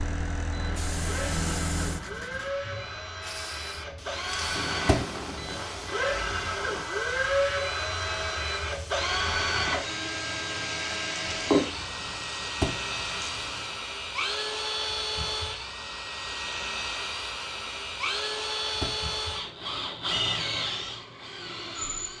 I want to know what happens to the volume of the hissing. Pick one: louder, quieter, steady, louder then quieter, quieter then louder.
quieter.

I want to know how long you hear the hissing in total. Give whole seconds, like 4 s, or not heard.
14 s.